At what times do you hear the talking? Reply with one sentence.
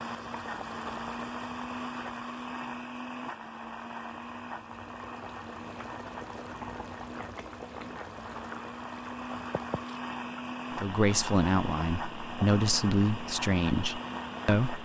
You can hear the talking from 10.8 to 14.8 s.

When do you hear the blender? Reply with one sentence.
The blender can be heard from 0.0 to 14.8 s.